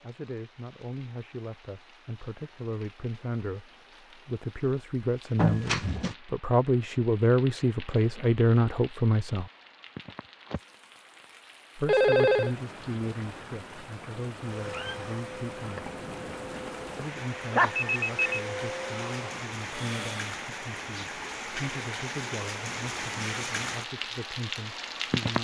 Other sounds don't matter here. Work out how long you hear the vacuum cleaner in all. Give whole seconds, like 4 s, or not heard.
6 s.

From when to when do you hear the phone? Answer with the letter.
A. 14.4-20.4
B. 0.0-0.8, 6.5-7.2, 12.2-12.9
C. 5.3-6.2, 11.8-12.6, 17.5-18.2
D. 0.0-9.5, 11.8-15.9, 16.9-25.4
C.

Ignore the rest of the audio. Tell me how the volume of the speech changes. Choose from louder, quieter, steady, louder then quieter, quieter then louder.
louder then quieter.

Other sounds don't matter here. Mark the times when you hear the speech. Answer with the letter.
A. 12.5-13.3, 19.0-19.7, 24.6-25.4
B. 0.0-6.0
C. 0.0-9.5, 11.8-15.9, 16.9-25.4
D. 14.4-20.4
C.